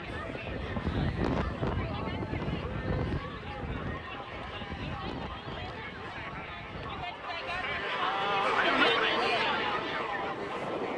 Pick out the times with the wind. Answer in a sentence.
The wind can be heard from 0.0 to 10.9 s.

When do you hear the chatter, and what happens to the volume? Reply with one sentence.
The chatter can be heard from 0.0 to 10.9 s, getting louder.